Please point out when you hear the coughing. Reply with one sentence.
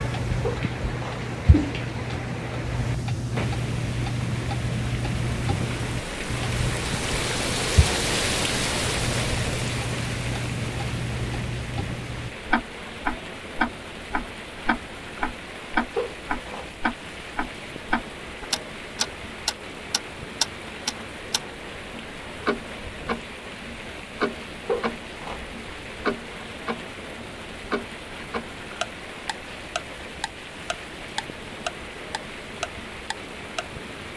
You can hear the coughing from 0.4 to 1.7 s, from 15.9 to 16.7 s and from 24.6 to 25.4 s.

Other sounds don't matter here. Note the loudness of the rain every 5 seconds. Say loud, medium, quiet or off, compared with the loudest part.
medium, loud, medium, medium, medium, medium, medium.